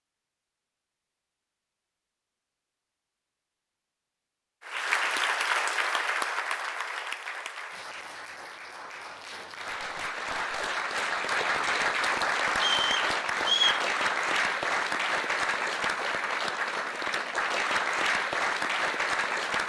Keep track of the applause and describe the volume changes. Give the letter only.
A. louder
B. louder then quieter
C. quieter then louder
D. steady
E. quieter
C.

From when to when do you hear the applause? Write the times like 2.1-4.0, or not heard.
4.6-19.6.